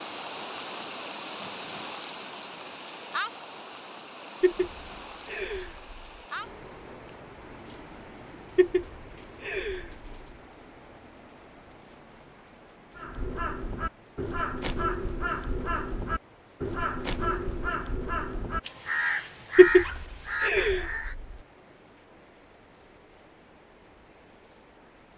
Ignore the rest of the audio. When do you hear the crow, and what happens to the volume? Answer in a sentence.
The crow can be heard from 12.9 to 21.1 s, at a steady volume.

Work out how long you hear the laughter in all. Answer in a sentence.
The laughter can be heard for 5 seconds in total.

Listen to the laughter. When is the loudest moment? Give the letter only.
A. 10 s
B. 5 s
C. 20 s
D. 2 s
C.